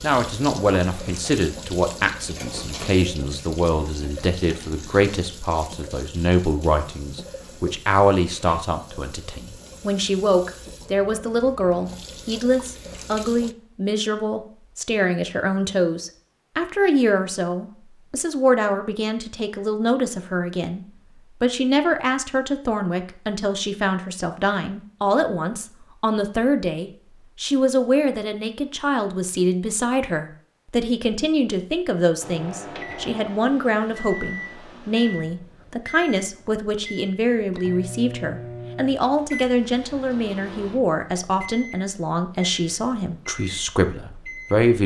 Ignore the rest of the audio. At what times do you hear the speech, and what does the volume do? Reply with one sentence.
You can hear the speech from 0.0 to 44.8 s, at a steady volume.